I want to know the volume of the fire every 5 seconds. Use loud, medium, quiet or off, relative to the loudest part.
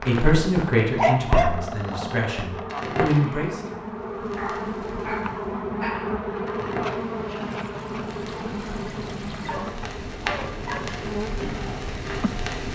loud, medium, loud.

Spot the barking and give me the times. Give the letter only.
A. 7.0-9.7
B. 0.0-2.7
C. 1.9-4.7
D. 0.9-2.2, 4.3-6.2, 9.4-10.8
D.